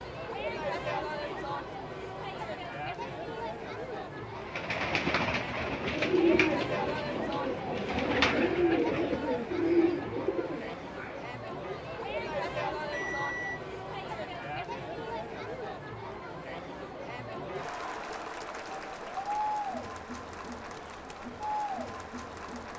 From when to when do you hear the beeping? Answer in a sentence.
The beeping can be heard from 12.9 to 13.6 s.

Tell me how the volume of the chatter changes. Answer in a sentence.
The volume of the chatter stays about the same.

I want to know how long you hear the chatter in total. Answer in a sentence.
You can hear the chatter for 23 seconds altogether.